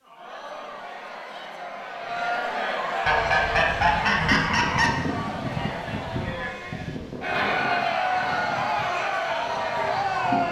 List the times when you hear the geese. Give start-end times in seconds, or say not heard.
3.0-4.9.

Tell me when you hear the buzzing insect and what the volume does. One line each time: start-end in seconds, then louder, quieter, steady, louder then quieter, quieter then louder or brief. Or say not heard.
not heard.